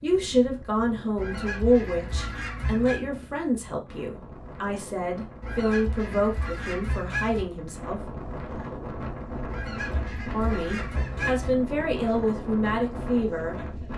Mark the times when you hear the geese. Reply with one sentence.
The geese can be heard from 1.1 to 3.0 s, from 5.4 to 7.5 s and from 9.4 to 11.5 s.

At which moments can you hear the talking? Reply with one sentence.
The talking can be heard from 0.0 to 8.0 s and from 10.3 to 13.9 s.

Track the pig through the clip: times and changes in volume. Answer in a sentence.
The pig can't be heard in this clip.